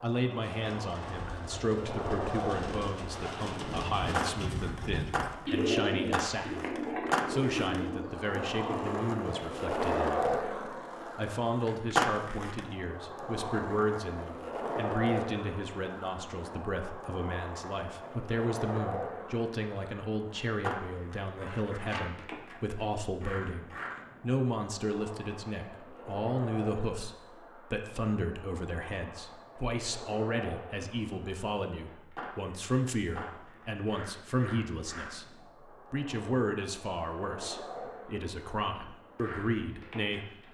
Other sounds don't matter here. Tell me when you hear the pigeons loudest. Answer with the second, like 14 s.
6 s.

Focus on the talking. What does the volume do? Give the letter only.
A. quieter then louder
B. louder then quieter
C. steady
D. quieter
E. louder
C.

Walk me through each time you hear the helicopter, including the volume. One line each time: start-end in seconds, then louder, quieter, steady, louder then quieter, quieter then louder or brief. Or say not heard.
not heard.